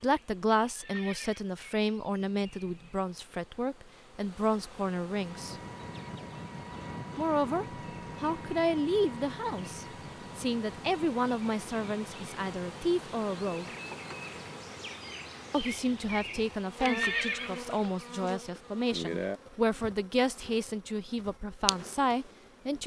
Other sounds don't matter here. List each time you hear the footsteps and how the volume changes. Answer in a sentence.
You can't hear the footsteps here.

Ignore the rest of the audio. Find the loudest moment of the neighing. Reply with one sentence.
The volume of the neighing peaks at 17 seconds.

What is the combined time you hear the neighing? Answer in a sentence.
You can hear the neighing for 2 seconds altogether.